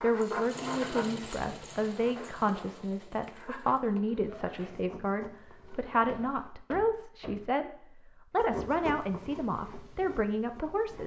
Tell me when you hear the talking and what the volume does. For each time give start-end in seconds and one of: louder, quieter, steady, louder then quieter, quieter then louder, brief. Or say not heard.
0.0-11.0 steady.